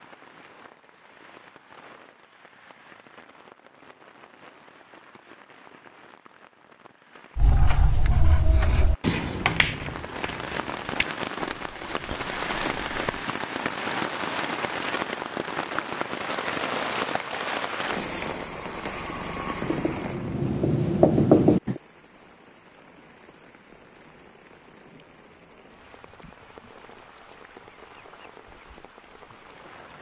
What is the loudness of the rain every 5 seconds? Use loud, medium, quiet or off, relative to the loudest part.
quiet, quiet, loud, loud, quiet, quiet.